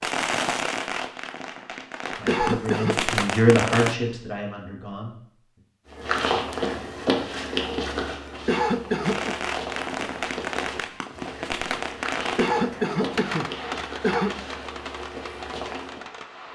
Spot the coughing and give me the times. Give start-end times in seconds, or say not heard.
2.2-3.0, 8.4-9.3, 12.3-14.3.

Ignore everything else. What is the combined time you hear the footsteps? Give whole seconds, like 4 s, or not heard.
10 s.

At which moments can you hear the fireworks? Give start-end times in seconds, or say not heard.
0.0-4.0, 9.0-16.5.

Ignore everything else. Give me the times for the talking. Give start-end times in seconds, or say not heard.
2.1-5.6.